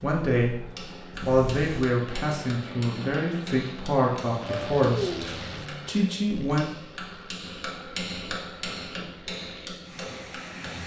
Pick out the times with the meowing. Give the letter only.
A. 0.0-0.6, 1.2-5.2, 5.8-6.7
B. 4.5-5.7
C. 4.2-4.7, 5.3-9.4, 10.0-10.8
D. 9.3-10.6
B.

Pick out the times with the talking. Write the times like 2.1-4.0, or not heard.
0.0-0.6, 1.2-5.2, 5.8-6.7.